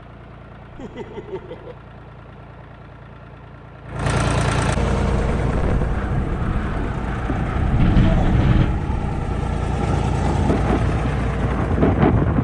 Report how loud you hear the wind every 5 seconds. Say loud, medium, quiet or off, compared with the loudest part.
off, loud, loud.